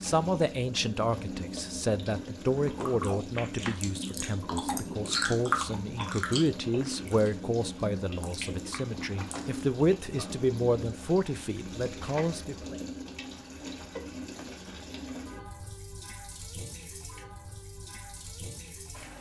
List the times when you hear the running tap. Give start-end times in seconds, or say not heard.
0.0-19.1.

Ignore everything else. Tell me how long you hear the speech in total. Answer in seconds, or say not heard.
13 s.